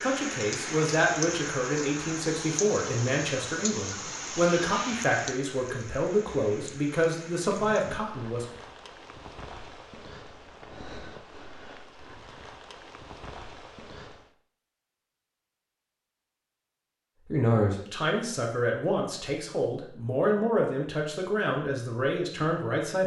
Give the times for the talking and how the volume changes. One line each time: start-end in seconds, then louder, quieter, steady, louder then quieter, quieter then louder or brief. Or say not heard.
0.0-8.4 steady
17.2-23.0 steady.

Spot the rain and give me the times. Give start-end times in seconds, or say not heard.
0.0-14.3.